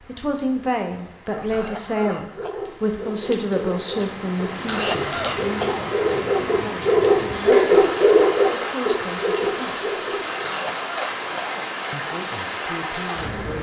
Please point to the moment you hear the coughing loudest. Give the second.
5 s.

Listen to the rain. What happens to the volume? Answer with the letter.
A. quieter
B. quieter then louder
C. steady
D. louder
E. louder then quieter
D.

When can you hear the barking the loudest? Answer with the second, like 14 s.
8 s.